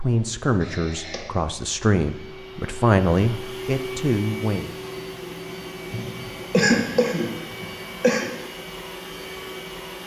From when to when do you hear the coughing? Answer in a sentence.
You can hear the coughing from 0.6 to 1.3 s and from 5.9 to 8.3 s.